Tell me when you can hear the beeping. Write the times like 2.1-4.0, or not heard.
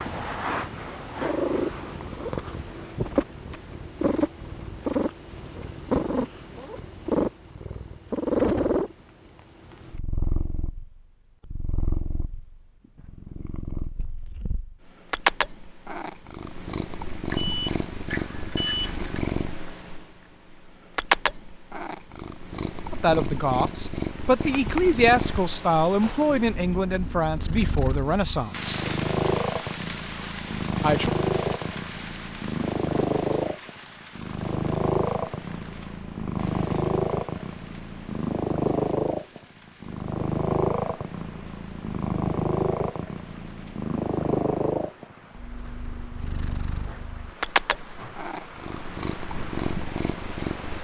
17.3-19.4.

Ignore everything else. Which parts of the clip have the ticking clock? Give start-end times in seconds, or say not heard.
not heard.